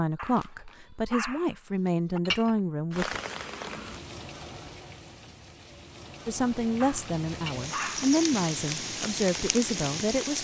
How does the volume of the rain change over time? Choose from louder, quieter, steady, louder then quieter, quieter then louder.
quieter then louder.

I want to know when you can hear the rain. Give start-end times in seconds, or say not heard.
2.9-10.3.